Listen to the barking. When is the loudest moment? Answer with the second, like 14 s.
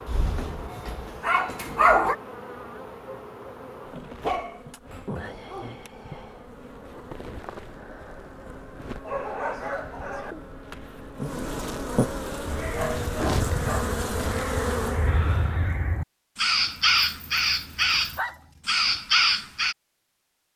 2 s.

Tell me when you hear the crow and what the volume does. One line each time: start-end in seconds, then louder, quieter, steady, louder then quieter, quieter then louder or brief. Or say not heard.
12.4-19.8 louder.